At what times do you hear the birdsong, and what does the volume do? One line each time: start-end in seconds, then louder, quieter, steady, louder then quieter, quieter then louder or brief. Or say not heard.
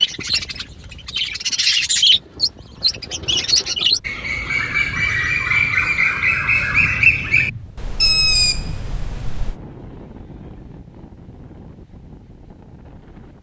0.0-9.6 steady.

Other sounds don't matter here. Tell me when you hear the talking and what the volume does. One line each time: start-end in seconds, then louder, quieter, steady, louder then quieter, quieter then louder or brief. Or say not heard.
not heard.